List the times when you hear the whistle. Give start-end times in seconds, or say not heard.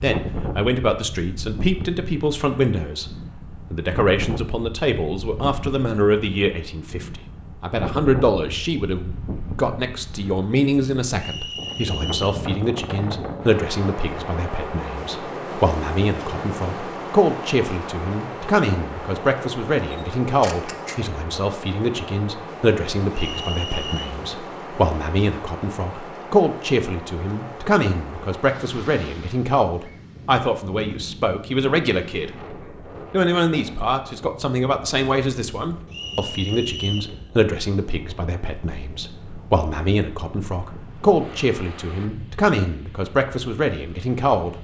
11.2-12.3, 23.1-24.1, 35.9-37.1.